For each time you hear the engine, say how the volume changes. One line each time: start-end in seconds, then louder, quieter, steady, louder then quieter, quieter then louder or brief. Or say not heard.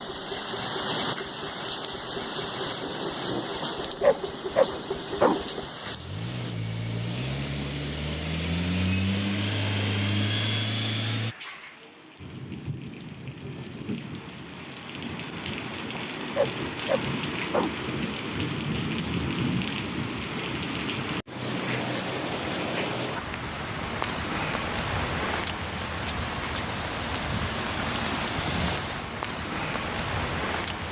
0.0-11.3 louder.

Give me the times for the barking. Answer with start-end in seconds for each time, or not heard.
3.6-5.3, 15.9-17.8.